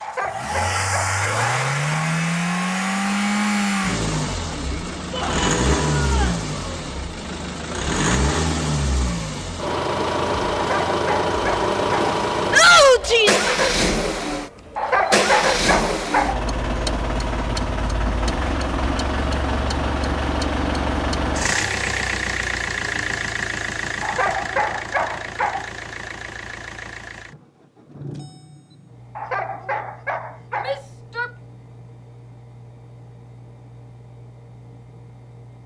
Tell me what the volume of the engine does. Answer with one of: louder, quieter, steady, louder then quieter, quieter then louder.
quieter.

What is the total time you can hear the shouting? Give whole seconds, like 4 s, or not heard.
3 s.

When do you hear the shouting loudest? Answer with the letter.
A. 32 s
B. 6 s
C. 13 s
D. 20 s
C.